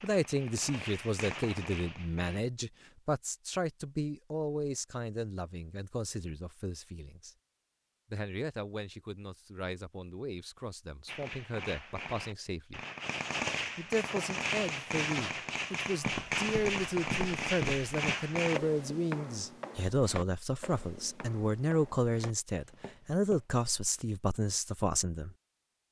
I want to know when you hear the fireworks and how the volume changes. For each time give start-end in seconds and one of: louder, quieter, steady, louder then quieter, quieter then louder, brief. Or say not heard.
0.0-2.5 brief
11.1-18.6 louder.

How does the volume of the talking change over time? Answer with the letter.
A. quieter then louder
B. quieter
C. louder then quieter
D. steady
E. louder
A.